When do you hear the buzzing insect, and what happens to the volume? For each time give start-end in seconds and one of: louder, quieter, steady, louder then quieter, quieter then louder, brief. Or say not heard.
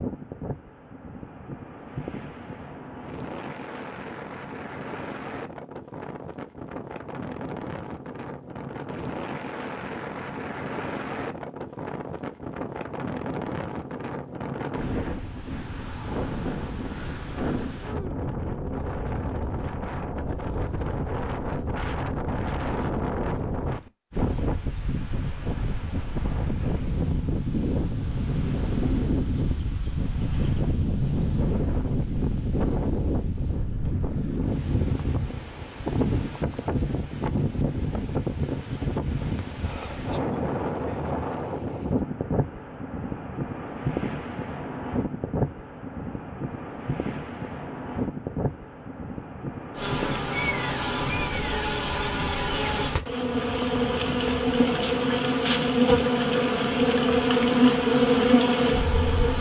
49.8-59.3 louder.